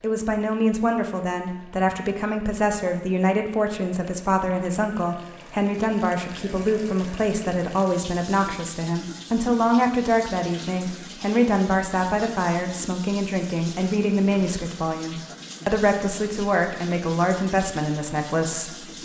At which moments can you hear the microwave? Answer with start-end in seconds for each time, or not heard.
not heard.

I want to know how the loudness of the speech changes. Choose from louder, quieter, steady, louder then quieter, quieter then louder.
steady.